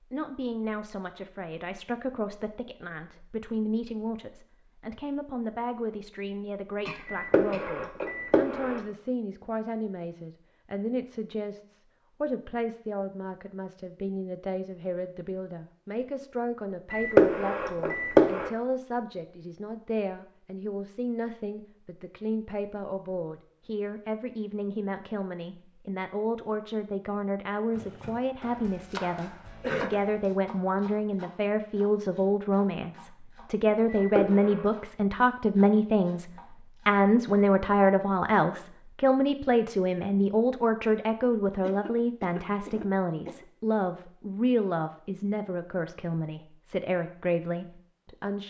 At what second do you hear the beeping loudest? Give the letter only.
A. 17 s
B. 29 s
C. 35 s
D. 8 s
A.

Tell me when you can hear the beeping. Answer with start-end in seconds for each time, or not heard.
7.0-8.8, 16.9-18.5, 34.0-34.6.